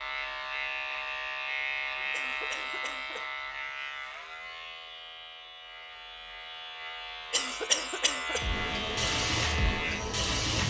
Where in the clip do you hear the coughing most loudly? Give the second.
8 s.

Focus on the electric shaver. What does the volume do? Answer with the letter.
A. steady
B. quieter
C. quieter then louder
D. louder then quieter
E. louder
C.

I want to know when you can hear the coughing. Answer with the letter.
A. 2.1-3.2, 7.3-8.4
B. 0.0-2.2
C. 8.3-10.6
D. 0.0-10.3
A.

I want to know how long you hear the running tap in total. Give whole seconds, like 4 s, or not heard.
2 s.